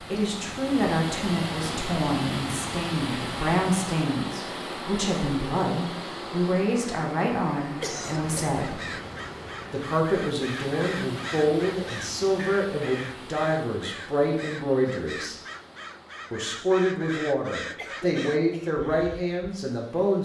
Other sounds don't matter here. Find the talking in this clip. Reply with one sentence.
You can hear the talking from 0.0 to 8.8 s, from 9.7 to 15.3 s and from 16.3 to 20.2 s.